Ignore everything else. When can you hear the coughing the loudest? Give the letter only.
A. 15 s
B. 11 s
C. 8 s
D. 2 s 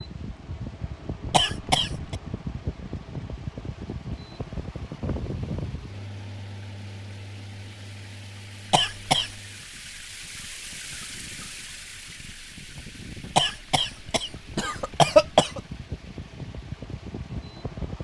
A.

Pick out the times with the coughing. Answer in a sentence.
You can hear the coughing from 1.3 to 2.1 s, from 8.7 to 9.3 s and from 13.3 to 15.6 s.